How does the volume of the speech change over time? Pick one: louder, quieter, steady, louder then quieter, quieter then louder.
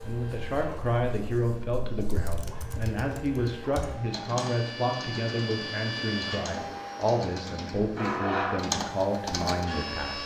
steady.